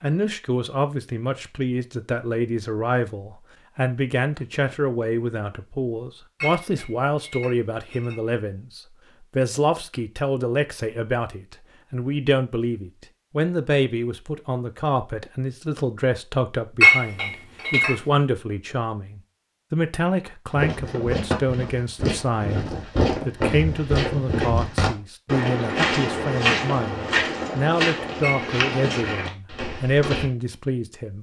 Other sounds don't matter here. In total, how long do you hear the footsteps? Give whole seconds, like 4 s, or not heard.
10 s.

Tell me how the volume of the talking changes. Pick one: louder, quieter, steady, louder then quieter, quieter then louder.
steady.